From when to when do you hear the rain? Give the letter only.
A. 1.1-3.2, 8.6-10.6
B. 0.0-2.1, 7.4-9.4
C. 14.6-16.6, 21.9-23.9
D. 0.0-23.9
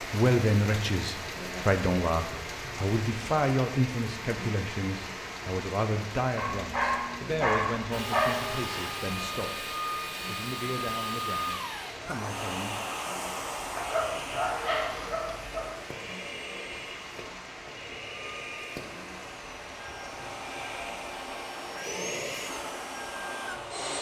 D.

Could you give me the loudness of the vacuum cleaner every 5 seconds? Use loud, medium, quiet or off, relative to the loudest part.
off, loud, loud, medium, loud.